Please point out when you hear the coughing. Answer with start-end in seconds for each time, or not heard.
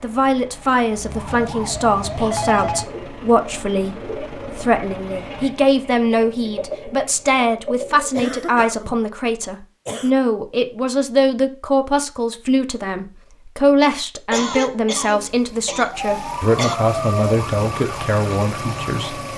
2.1-2.9, 8.1-10.1, 14.3-16.8.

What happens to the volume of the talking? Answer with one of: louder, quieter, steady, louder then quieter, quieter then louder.
steady.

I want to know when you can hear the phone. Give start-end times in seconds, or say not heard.
2.1-2.9.